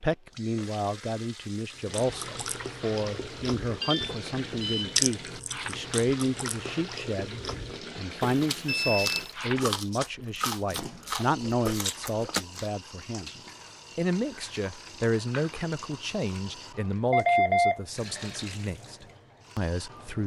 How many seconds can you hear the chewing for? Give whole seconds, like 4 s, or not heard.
11 s.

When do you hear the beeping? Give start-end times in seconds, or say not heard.
3.8-5.0, 8.2-9.3, 17.1-17.8.